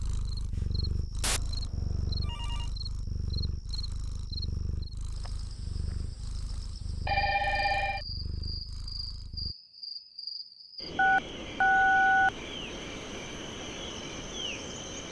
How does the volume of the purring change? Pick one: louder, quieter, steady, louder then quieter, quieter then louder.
quieter.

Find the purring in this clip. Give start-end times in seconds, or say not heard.
0.0-9.6.